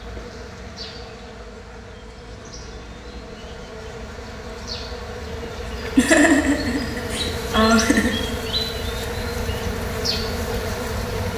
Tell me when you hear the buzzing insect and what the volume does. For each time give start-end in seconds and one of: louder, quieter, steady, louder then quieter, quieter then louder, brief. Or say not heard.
0.0-11.3 louder.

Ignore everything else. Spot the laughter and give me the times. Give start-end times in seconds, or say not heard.
6.0-8.2.